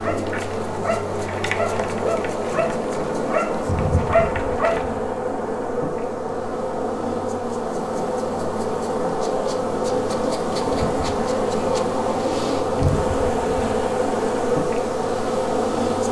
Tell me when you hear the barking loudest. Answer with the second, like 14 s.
4 s.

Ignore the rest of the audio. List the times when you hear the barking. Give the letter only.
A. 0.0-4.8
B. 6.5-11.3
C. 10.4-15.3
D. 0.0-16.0
A.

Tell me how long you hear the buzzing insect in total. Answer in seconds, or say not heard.
16 s.